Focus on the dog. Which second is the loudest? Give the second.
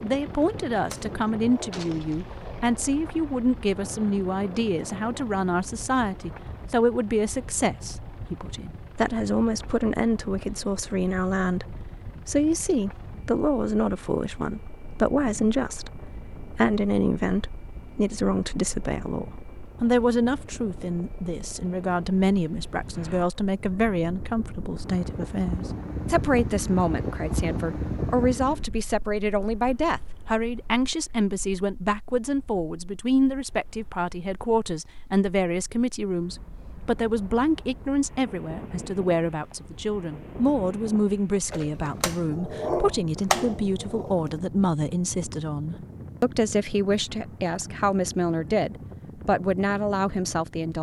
43 s.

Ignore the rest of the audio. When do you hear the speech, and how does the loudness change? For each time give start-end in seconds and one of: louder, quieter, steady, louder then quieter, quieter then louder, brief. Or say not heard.
0.0-50.7 steady.